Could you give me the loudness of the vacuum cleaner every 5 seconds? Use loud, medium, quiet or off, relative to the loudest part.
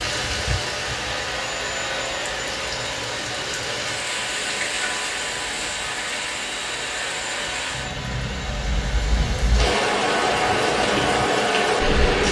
loud, loud, off.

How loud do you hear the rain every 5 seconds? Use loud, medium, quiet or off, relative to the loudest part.
medium, medium, loud.